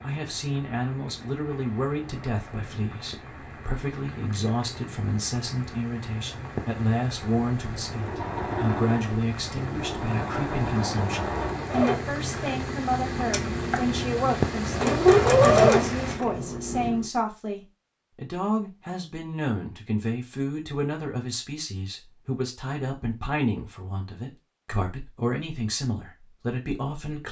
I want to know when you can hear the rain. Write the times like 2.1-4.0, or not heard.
0.0-16.2.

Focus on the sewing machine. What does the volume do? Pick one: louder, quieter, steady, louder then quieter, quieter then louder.
louder.